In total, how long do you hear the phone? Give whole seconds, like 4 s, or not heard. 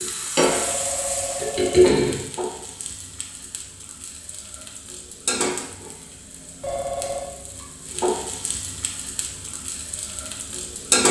2 s.